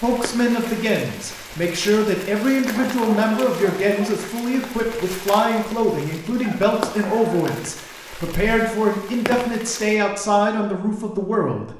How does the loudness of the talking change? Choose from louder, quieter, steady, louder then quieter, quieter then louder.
steady.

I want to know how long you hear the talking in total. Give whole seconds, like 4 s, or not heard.
12 s.